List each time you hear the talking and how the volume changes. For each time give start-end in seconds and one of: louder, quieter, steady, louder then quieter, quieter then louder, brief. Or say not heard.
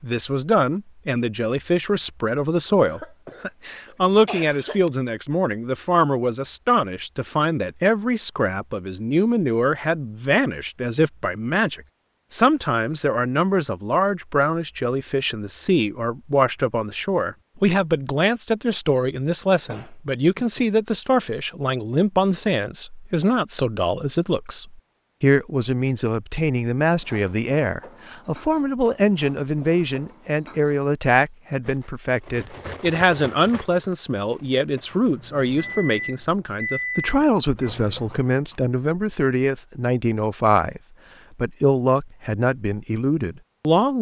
0.0-43.9 steady.